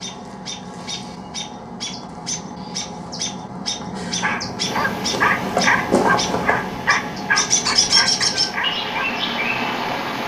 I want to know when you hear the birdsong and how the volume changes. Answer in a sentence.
The birdsong can be heard from 0.0 to 10.2 s, getting louder.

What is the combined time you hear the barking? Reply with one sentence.
You can hear the barking for 5 seconds altogether.